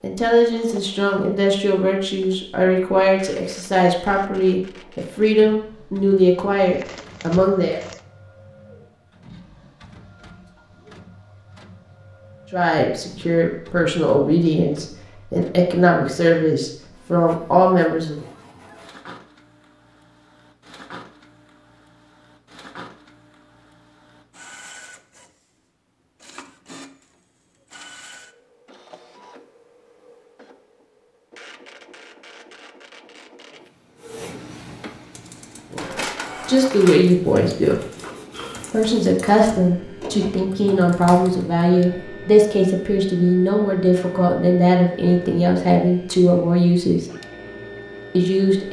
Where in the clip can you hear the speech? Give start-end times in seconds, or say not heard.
0.0-7.8, 12.5-18.2, 35.7-37.8, 38.7-47.1, 48.1-48.6.